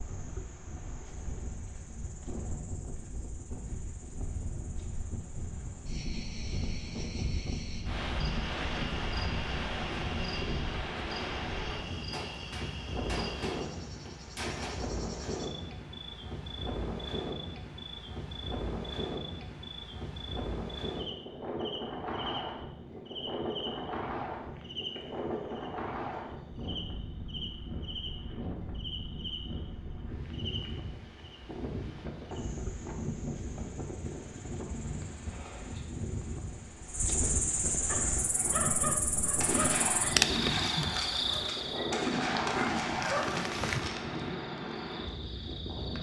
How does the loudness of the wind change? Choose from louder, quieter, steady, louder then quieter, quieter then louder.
steady.